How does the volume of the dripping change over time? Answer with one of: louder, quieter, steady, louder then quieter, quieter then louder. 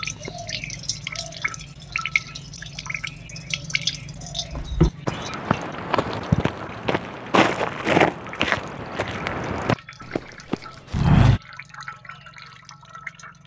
quieter.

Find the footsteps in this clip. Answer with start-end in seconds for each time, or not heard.
4.5-11.4.